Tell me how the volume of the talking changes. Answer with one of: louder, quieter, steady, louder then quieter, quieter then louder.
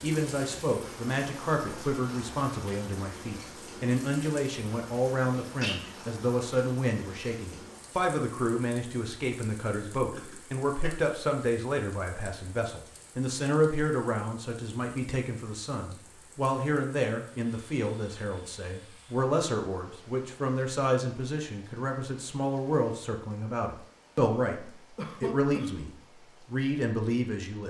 steady.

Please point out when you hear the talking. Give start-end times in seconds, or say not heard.
0.0-27.6.